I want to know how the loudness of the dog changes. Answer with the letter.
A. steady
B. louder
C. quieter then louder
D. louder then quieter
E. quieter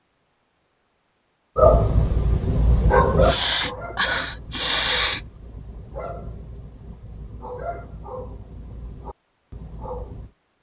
E.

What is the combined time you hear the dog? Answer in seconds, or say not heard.
9 s.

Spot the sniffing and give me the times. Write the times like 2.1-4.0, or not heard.
3.2-5.2.